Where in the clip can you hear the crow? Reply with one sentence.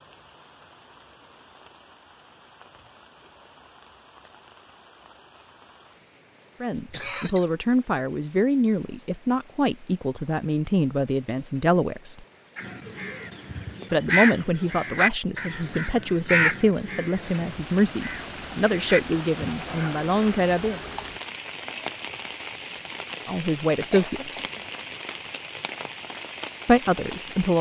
You can hear the crow from 12.6 to 19.6 s.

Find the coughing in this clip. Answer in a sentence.
The coughing can be heard from 6.8 to 7.5 s and from 23.9 to 24.7 s.